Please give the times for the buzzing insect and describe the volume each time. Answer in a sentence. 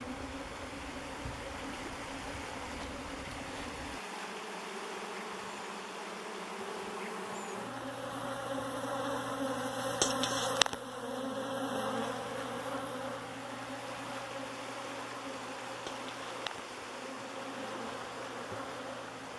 The buzzing insect can be heard from 0.0 to 19.3 s, getting louder then quieter.